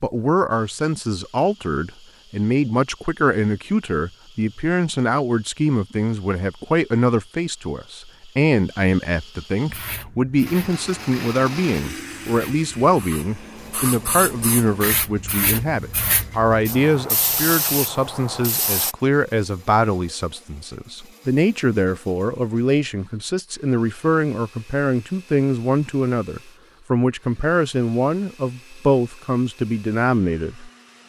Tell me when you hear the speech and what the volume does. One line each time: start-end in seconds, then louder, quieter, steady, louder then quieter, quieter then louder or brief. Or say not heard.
0.0-30.7 steady.